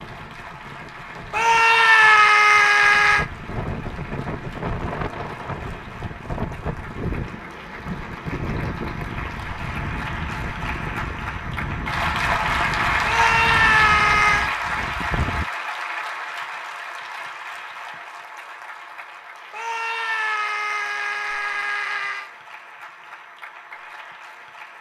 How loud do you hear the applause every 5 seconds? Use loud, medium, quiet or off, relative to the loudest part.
quiet, quiet, loud, medium, quiet.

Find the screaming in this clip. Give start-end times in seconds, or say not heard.
1.3-3.2, 13.1-14.5, 19.5-22.3.